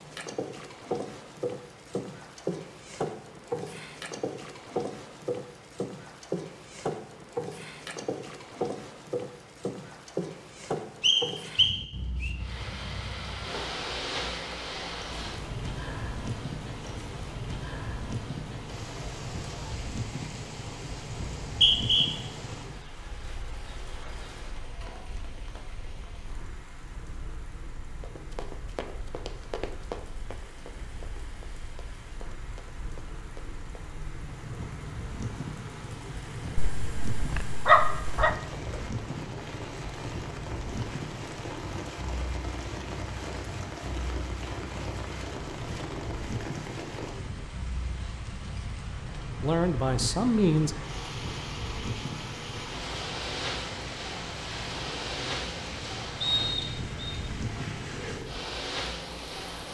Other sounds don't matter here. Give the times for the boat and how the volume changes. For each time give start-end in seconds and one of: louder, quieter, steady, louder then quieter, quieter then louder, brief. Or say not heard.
0.0-59.6 quieter then louder.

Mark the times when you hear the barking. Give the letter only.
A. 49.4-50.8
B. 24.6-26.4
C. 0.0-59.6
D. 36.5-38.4
D.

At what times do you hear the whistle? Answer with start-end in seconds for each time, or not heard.
11.0-12.3, 21.4-22.1, 56.2-57.1.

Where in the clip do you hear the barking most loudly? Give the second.
38 s.